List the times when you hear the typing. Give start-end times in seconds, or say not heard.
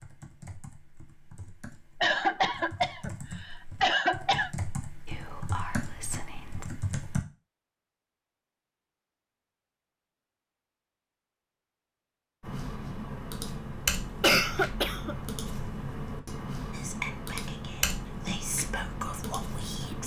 0.0-7.2, 12.4-20.0.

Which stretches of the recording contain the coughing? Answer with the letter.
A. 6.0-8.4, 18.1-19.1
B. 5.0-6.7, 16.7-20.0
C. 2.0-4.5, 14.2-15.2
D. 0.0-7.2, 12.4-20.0
C.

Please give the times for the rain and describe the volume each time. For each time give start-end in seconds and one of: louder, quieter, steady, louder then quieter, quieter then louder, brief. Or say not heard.
not heard.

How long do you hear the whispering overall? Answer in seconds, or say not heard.
5 s.